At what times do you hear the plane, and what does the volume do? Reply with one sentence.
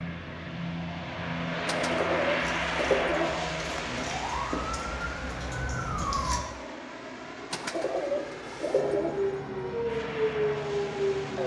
You can hear the plane from 0.0 to 11.4 s, getting quieter.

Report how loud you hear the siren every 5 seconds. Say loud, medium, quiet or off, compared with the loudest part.
medium, loud, loud.